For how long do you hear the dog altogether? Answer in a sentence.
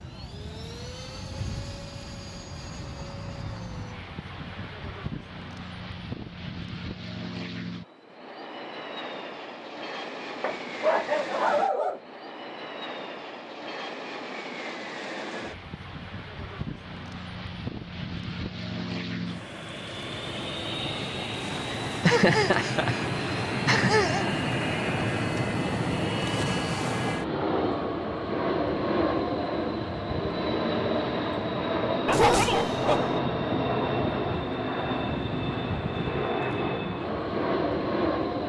The dog can be heard for 3 seconds in total.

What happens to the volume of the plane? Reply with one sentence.
The volume of the plane goes up.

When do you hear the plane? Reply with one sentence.
You can hear the plane from 0.0 to 38.4 s.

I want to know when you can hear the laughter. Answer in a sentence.
You can hear the laughter from 21.7 to 24.3 s.